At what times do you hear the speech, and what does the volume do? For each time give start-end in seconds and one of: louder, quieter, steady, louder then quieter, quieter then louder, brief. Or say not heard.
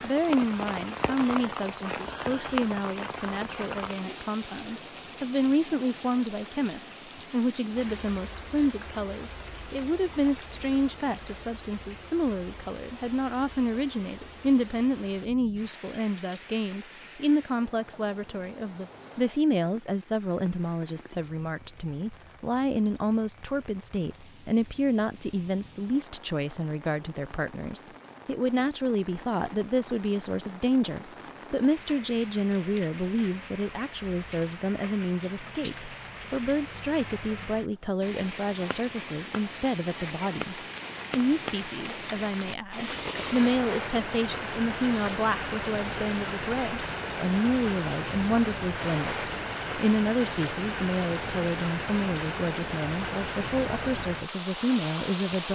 0.0-55.5 steady.